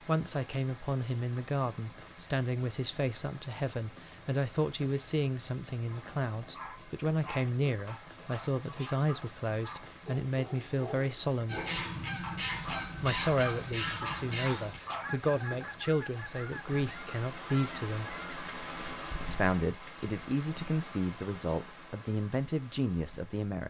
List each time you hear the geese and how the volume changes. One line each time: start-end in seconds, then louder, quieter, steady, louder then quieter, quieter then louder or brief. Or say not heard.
11.4-18.1 quieter.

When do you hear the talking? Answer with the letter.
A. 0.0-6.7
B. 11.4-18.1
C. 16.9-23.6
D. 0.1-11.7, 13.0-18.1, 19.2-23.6
D.